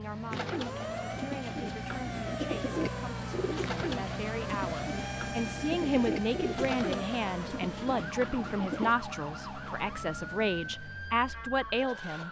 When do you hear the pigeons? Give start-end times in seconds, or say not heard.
0.3-8.9.